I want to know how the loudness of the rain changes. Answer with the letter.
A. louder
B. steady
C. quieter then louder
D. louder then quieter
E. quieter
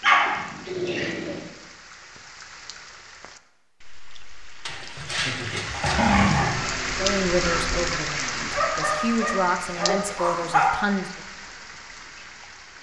D.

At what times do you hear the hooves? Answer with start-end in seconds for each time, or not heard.
not heard.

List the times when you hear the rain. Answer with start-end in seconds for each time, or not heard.
0.0-12.7.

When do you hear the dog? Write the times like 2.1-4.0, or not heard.
0.0-1.4, 4.7-6.5, 8.5-10.8.